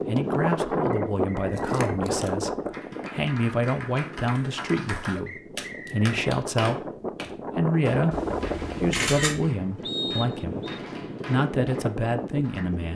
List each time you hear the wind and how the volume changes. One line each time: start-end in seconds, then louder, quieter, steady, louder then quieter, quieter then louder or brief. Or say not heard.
0.0-12.9 quieter then louder.